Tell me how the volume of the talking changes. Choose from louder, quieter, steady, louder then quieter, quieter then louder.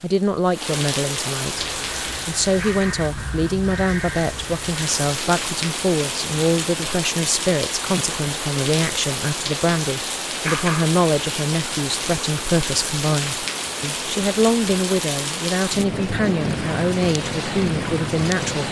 steady.